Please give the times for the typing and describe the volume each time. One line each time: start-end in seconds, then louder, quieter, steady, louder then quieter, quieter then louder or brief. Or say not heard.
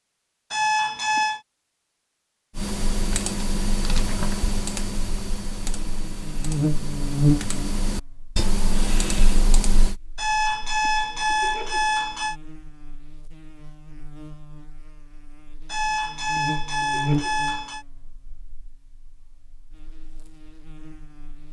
2.5-9.9 quieter then louder.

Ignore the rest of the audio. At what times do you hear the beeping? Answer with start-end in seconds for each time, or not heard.
0.5-1.4, 10.2-12.3, 15.7-17.9.